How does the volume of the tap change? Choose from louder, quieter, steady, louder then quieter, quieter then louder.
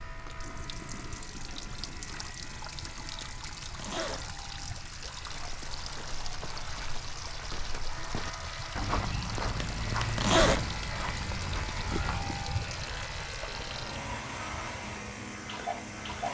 steady.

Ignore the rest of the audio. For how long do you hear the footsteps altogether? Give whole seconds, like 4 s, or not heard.
7 s.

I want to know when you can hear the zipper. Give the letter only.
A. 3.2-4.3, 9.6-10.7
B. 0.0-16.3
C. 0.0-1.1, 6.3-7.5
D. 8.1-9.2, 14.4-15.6
A.